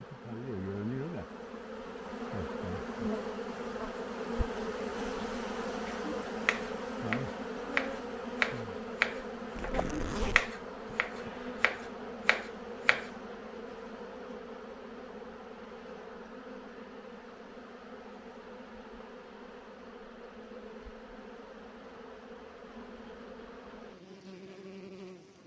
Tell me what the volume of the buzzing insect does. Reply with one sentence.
The volume of the buzzing insect goes down.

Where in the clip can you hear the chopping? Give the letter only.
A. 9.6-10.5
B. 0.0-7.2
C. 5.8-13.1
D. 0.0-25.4
C.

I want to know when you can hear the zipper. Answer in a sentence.
The zipper can be heard from 9.6 to 10.5 s.